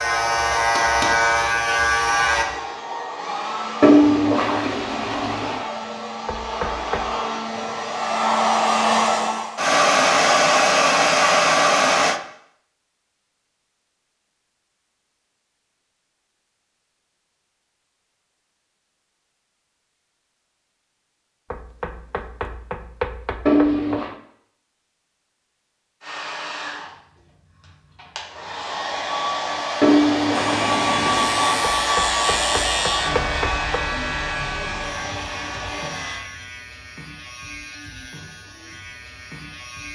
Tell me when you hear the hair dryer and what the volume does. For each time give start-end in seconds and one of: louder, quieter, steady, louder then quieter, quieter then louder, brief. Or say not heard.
0.0-12.2 louder
26.0-36.2 louder then quieter.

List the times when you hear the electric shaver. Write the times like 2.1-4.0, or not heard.
0.0-2.5, 30.3-39.8.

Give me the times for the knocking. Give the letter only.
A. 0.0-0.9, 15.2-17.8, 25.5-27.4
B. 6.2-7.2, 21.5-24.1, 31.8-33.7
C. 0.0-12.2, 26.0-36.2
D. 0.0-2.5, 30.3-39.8
B.